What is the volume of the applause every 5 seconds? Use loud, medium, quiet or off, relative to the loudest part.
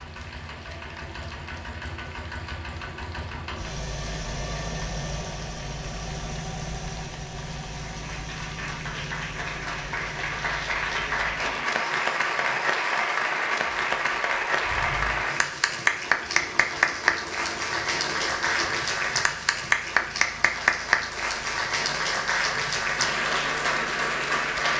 quiet, quiet, loud, loud, loud.